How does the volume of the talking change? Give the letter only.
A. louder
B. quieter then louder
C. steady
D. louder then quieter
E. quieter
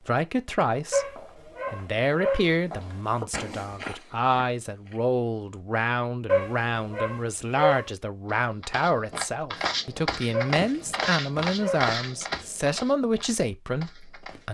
C.